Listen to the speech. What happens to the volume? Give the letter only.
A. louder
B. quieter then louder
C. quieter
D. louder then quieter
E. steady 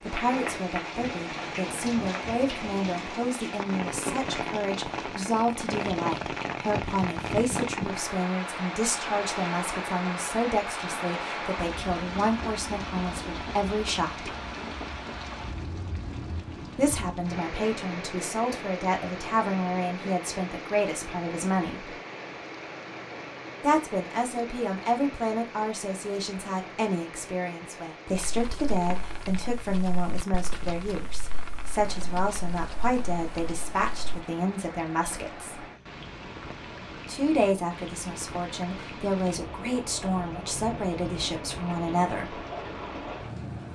E.